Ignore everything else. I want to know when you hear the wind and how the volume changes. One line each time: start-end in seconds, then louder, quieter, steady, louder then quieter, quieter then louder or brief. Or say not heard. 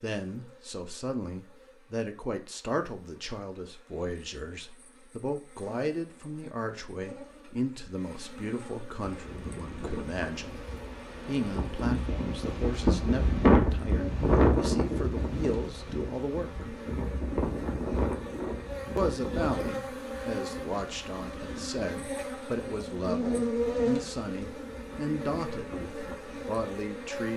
9.0-27.3 louder then quieter.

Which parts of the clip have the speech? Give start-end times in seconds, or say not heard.
0.0-10.6, 11.2-16.7, 18.9-27.3.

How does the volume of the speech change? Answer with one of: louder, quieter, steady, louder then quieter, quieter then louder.
steady.